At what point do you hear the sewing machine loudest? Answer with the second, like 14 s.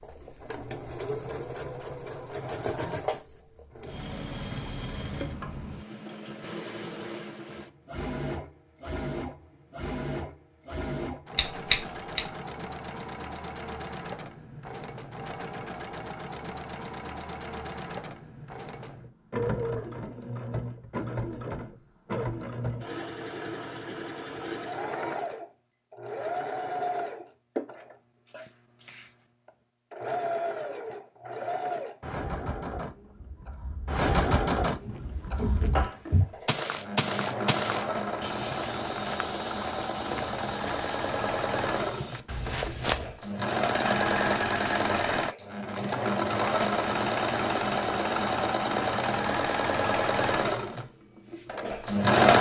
52 s.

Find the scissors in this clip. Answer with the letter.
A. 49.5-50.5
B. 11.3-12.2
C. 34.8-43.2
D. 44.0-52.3
B.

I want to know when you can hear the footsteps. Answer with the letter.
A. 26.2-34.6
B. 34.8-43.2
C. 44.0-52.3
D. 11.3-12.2
B.